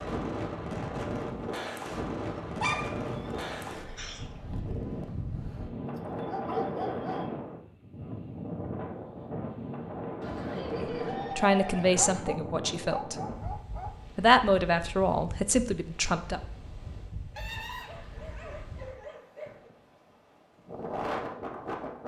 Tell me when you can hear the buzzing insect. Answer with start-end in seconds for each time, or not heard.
not heard.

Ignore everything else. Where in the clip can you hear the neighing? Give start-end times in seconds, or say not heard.
3.0-4.2, 10.2-12.2, 17.4-18.6.